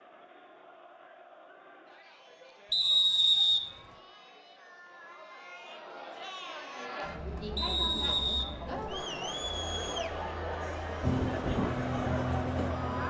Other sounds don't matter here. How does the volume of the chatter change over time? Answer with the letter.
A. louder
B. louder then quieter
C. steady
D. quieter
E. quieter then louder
A.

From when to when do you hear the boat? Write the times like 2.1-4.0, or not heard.
11.0-13.0.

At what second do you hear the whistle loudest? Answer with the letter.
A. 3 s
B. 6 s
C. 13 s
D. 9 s
A.